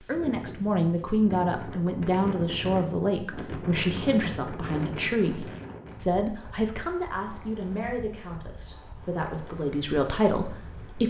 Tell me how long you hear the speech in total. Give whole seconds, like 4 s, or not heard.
11 s.